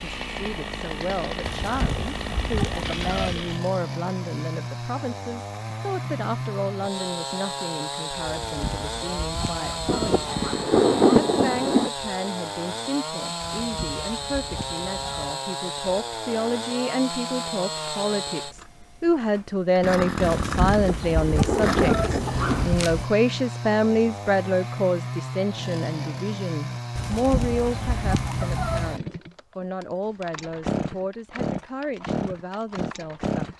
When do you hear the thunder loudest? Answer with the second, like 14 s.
11 s.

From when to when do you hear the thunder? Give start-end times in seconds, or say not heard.
9.8-11.9, 20.6-22.6.